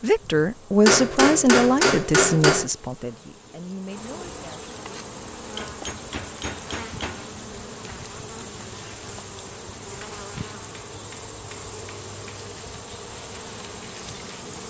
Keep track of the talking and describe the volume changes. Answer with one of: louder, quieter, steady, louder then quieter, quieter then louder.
quieter.